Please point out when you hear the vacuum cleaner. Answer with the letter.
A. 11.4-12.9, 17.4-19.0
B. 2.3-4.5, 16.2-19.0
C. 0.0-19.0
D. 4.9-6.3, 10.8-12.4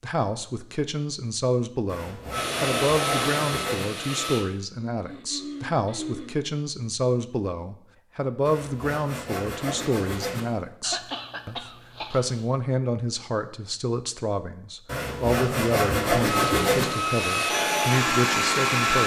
B.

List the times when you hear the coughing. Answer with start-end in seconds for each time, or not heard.
4.9-6.3, 10.8-12.4.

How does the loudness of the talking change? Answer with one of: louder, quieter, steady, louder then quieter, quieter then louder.
steady.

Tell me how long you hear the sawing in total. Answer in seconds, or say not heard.
6 s.